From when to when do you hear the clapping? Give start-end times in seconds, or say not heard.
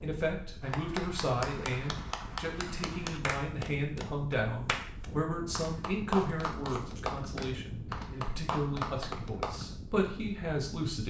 0.6-9.7.